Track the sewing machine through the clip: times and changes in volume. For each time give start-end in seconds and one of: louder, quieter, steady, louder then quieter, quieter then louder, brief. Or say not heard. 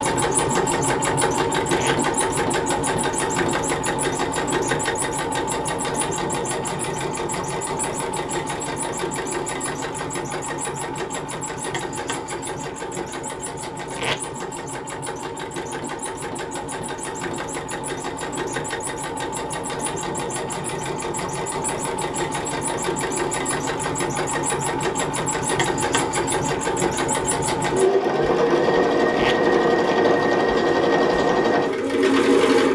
0.0-32.7 quieter then louder.